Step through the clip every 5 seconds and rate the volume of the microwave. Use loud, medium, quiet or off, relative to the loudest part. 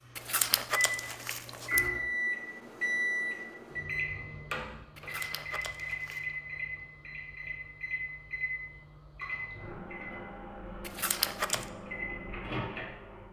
loud, medium, medium.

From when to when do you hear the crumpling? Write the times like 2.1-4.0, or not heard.
0.1-1.9, 5.0-6.2, 10.8-11.7.